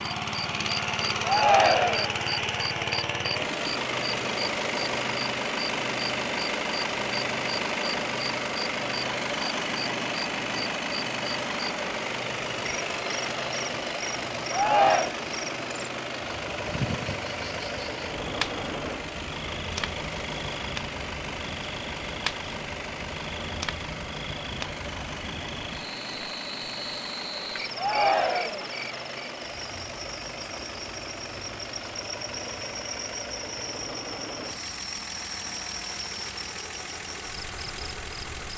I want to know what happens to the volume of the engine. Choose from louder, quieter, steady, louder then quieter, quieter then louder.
quieter.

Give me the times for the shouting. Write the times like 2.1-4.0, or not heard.
1.2-2.1, 14.5-15.2, 27.8-28.6.